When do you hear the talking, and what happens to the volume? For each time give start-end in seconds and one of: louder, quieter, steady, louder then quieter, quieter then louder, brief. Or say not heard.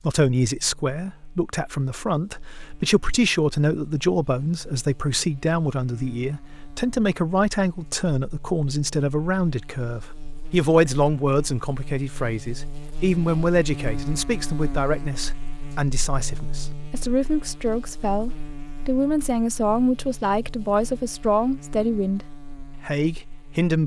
0.0-22.2 steady
22.9-23.8 brief.